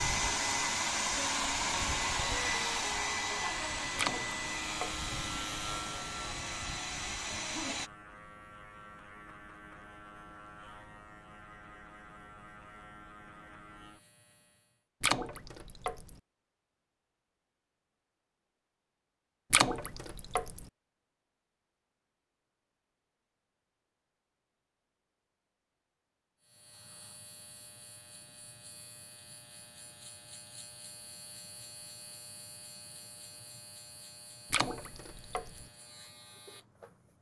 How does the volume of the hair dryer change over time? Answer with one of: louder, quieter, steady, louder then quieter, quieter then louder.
quieter.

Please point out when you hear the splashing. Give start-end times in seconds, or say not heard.
4.0-5.0, 15.0-16.1, 19.5-20.6, 34.5-35.6.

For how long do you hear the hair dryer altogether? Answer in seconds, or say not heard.
8 s.